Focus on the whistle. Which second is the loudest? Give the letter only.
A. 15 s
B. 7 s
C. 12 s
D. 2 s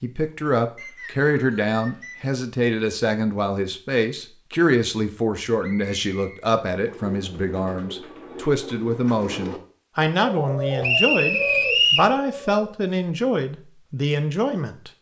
C.